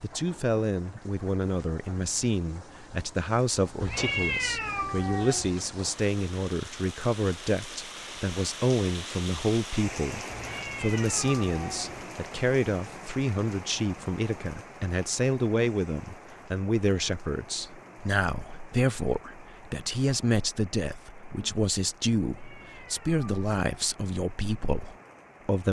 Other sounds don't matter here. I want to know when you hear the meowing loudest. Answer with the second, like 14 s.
4 s.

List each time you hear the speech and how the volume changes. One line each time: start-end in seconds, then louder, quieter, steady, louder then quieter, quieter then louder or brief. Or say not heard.
0.0-25.6 steady.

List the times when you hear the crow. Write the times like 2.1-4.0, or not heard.
not heard.